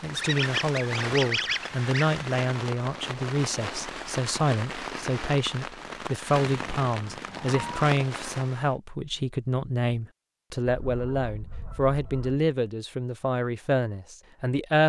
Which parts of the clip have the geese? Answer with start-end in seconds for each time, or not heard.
0.1-2.1, 6.5-7.9, 10.7-12.4.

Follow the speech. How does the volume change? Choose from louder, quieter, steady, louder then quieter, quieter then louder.
steady.